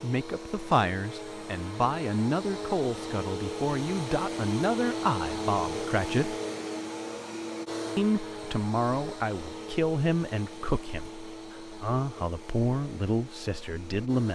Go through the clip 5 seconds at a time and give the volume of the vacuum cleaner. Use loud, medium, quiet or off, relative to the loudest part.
loud, loud, medium.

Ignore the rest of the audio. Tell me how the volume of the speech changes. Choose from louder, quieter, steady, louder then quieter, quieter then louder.
steady.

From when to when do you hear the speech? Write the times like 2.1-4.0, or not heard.
0.0-6.3, 8.0-14.3.